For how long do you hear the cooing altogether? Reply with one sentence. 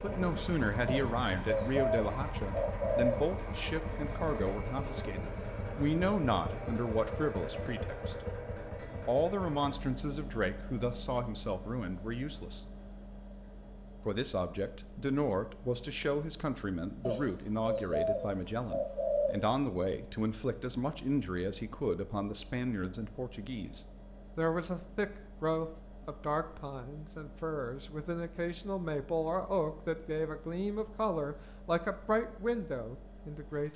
The cooing can be heard for 5 seconds in total.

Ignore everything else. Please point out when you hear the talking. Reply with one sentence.
You can hear the talking from 0.0 to 8.2 s, from 9.1 to 12.7 s and from 14.1 to 33.7 s.